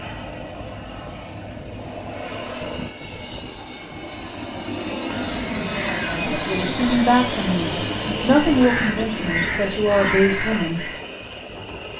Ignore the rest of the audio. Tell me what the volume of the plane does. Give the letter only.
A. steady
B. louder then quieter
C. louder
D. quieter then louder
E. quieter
B.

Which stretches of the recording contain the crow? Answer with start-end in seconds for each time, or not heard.
5.0-11.0.